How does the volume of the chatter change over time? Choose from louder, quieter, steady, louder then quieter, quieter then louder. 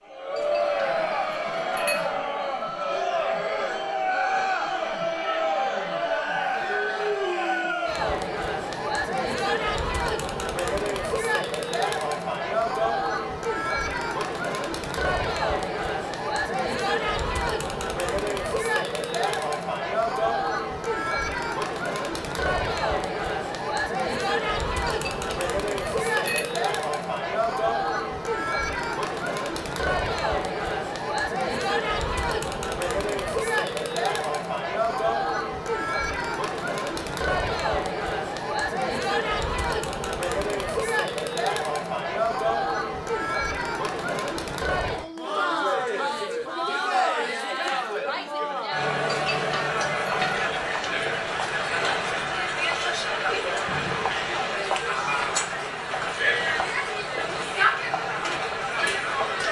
steady.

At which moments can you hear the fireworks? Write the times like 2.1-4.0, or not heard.
50.4-59.4.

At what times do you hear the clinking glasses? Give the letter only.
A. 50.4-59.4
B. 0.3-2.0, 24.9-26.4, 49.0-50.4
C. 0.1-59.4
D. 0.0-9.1
B.